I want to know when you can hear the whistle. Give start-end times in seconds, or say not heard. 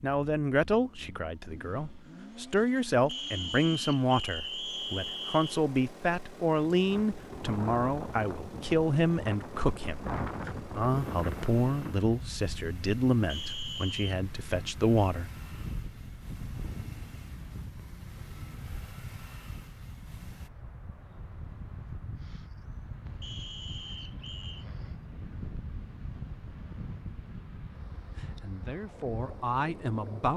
3.0-5.6, 13.2-14.2, 23.2-24.6.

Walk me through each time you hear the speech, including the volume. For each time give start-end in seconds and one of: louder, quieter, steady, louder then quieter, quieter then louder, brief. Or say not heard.
0.0-15.3 steady
28.2-30.3 brief.